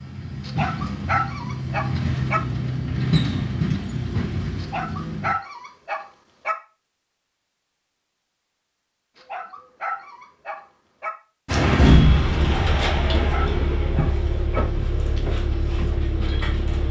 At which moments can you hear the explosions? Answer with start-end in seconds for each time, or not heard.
11.8-13.1.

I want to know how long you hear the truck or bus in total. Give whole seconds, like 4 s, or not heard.
11 s.